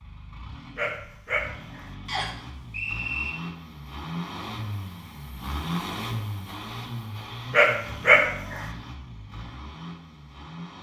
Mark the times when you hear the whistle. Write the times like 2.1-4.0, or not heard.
2.0-3.3.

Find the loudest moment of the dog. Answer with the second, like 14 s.
8 s.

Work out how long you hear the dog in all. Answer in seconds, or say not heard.
2 s.